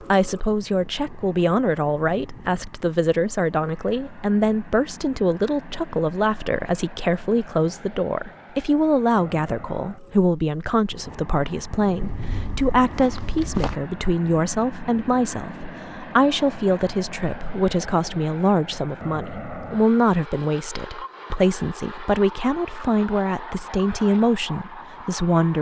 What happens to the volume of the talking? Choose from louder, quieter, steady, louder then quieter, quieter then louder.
steady.